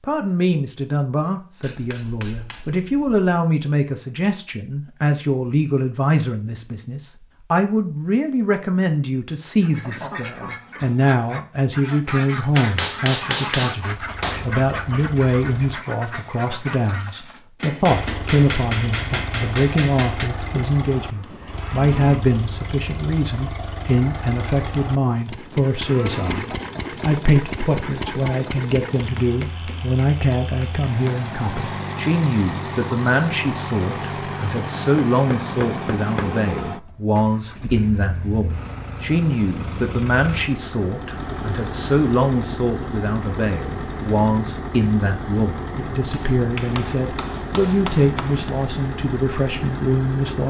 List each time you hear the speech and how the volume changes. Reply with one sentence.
You can hear the speech from 0.0 to 50.4 s, at a steady volume.